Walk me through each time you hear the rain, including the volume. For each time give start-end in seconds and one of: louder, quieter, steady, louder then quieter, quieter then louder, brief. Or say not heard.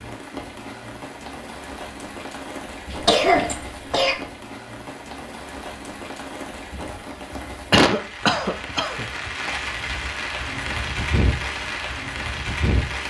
0.0-13.0 louder.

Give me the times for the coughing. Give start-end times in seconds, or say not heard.
2.9-4.2, 7.7-9.1.